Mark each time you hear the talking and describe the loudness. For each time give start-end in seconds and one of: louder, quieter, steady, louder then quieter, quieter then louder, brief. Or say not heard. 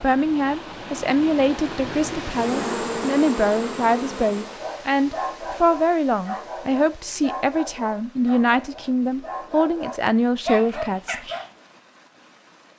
0.0-11.2 steady.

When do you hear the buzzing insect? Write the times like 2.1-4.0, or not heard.
2.3-4.7.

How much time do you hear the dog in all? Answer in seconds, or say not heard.
7 s.